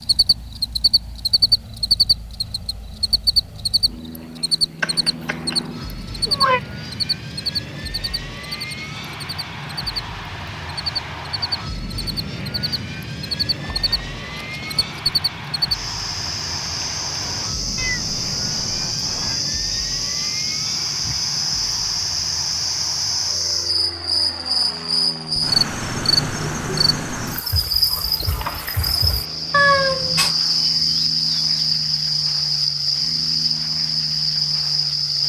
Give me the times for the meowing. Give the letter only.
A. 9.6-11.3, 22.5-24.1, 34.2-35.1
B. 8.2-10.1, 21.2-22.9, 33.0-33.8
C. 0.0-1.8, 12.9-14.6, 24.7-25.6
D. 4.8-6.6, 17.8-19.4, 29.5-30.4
D.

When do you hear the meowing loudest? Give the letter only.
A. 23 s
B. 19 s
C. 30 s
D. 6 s
C.